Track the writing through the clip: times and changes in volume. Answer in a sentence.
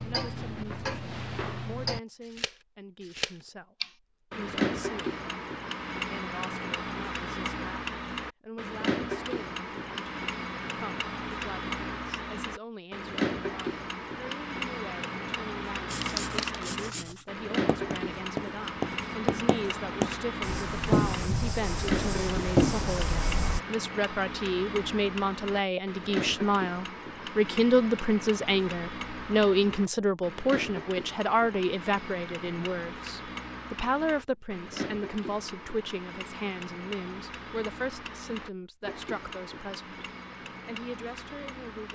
The writing can be heard from 15.8 to 23.6 s, getting louder.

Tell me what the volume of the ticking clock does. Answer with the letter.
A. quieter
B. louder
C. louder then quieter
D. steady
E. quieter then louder
A.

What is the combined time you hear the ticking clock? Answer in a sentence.
The ticking clock can be heard for 42 seconds in total.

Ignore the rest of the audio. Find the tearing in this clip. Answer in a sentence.
You can hear the tearing from 15.9 to 16.6 s.